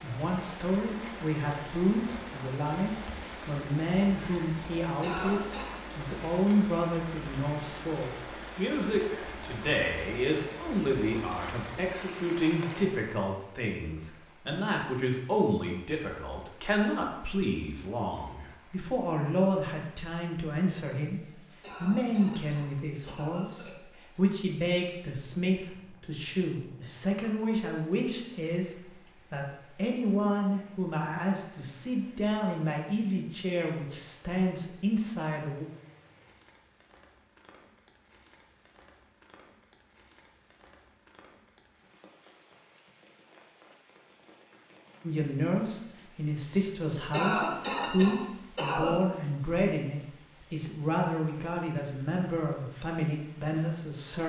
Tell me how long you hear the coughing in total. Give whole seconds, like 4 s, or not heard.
5 s.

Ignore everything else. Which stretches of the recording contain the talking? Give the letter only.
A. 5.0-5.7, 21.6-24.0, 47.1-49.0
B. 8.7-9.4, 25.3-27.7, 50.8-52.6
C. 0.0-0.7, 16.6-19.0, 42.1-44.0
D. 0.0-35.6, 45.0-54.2
D.